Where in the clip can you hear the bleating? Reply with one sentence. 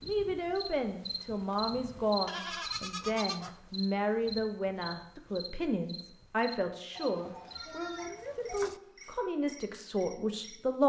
You can hear the bleating from 2.2 to 3.6 s and from 7.0 to 8.8 s.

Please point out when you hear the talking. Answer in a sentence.
You can hear the talking from 0.0 to 10.8 s.